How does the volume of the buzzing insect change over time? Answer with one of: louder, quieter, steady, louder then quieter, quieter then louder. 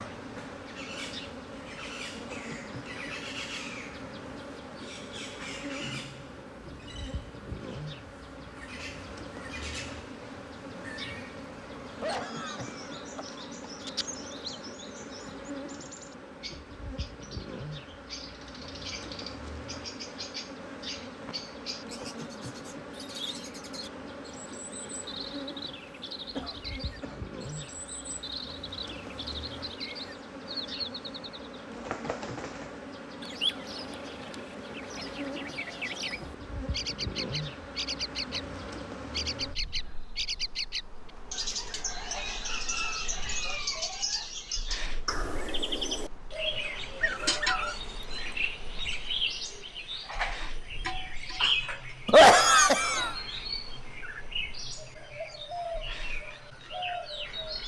quieter.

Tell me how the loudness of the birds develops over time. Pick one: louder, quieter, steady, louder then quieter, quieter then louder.
louder.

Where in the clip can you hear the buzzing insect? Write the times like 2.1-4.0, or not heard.
0.0-57.6.